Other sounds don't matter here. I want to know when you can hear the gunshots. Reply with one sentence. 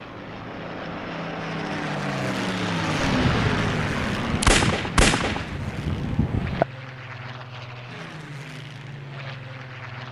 The gunshots can be heard from 3.0 to 6.7 s.